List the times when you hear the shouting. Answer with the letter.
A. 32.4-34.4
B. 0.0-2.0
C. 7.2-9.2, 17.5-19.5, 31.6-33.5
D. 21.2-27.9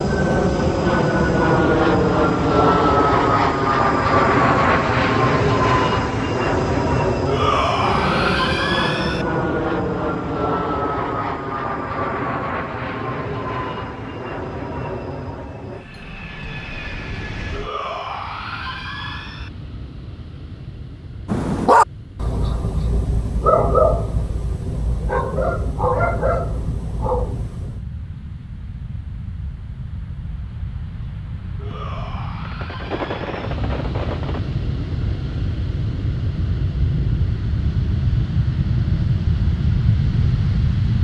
C.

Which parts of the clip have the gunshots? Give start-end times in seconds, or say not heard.
32.4-34.4.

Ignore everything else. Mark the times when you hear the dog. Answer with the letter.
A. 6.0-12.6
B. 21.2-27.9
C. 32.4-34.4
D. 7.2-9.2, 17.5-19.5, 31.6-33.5
B.